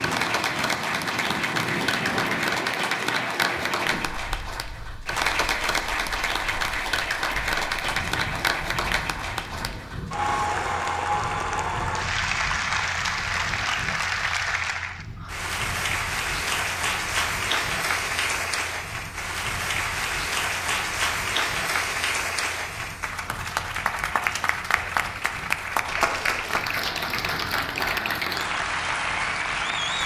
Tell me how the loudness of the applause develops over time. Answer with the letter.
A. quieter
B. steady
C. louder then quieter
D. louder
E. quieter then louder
B.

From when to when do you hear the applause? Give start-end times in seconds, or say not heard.
0.0-30.0.